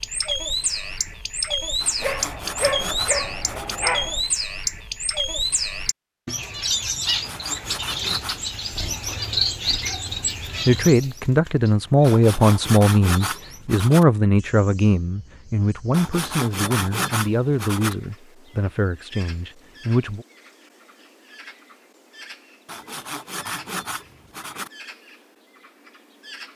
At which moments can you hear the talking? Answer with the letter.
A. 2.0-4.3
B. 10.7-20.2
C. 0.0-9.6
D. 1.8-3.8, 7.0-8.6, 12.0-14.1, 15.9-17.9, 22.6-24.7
B.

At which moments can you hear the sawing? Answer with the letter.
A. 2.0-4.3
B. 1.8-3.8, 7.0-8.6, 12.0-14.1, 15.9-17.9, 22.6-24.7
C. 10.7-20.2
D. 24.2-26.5
B.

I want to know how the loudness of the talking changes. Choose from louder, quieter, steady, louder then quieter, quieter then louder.
quieter.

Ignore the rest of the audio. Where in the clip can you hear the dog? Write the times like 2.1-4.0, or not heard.
2.0-4.3.